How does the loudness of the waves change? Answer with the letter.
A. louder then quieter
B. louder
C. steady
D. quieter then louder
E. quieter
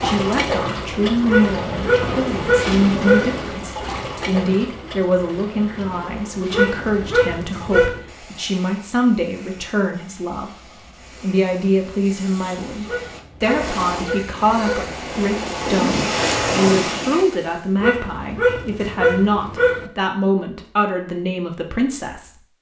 D.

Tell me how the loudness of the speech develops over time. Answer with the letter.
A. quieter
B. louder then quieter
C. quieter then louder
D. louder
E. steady
E.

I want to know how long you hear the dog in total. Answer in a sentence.
The dog can be heard for 8 seconds in total.